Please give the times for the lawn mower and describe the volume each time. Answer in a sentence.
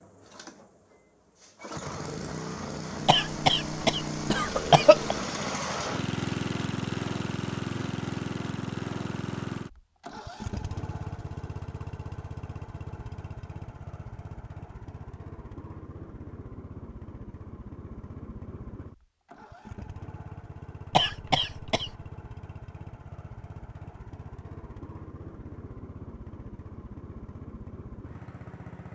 You can hear the lawn mower from 0.0 to 28.8 s, getting quieter.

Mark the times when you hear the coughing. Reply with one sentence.
The coughing can be heard from 3.0 to 5.2 s and from 20.9 to 21.9 s.